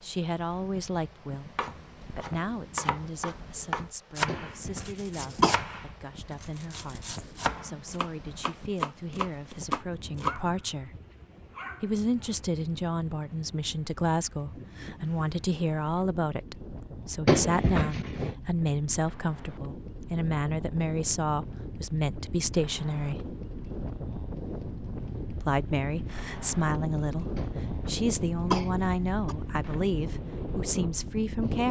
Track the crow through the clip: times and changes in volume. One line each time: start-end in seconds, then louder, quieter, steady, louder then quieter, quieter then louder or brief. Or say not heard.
not heard.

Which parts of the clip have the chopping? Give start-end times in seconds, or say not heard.
1.6-10.3.